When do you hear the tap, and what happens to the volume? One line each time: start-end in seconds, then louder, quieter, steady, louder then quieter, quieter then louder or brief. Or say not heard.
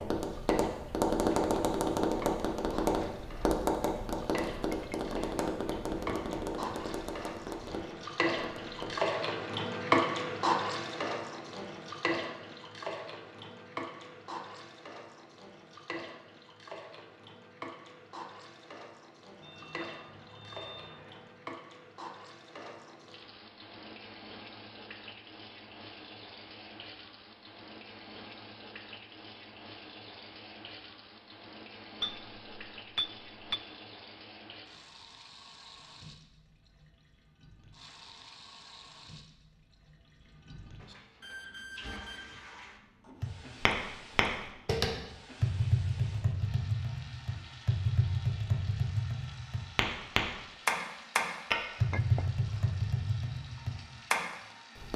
0.0-54.9 quieter.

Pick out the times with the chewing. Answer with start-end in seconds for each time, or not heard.
not heard.